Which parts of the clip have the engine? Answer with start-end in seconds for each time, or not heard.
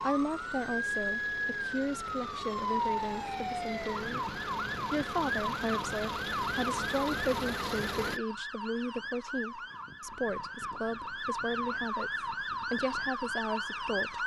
0.0-8.2.